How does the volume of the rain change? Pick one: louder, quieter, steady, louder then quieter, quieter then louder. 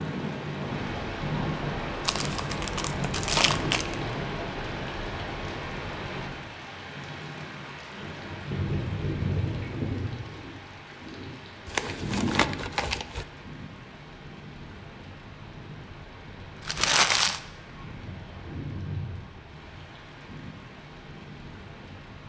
quieter.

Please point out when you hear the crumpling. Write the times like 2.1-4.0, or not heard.
2.0-4.0, 11.7-13.2, 16.6-17.4.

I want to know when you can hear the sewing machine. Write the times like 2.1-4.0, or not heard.
not heard.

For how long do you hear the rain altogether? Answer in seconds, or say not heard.
22 s.